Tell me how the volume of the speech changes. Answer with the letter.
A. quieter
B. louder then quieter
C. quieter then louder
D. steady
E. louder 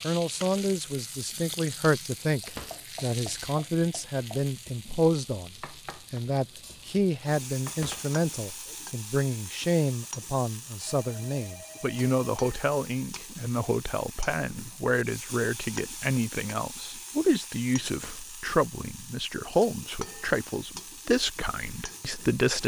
D.